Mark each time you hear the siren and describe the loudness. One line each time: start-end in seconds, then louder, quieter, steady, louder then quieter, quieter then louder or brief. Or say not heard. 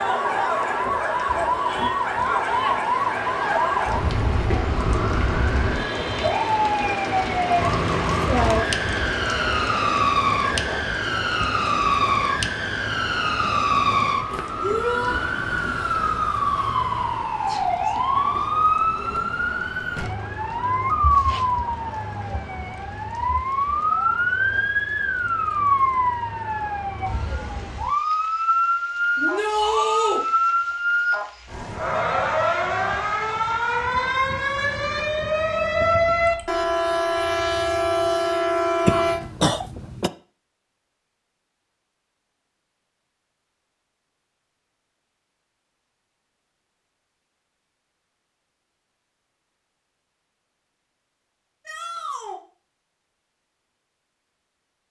0.0-39.2 steady.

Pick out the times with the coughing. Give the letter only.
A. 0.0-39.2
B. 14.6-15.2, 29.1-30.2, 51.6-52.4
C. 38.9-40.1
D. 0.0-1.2
C.